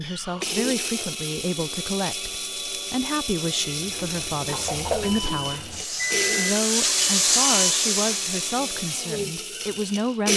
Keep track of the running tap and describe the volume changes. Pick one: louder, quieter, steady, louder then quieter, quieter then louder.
louder.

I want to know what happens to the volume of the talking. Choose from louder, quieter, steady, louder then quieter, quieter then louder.
steady.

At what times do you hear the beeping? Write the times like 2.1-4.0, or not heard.
5.0-7.8.